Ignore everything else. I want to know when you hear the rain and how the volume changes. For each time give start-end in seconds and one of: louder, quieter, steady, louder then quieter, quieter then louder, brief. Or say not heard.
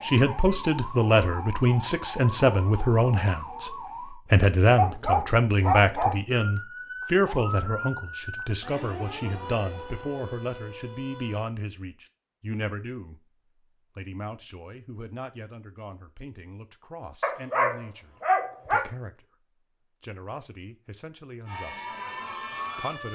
not heard.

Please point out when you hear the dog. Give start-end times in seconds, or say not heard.
4.8-6.2, 17.2-18.9.